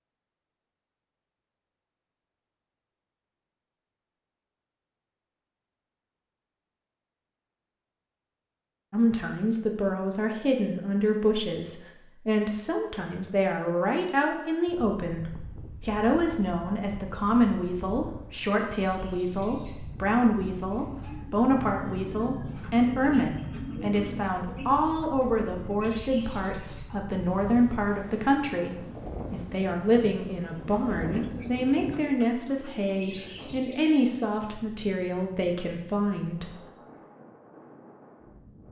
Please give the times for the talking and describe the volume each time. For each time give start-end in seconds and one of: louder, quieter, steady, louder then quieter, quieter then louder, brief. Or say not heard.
8.9-36.5 steady.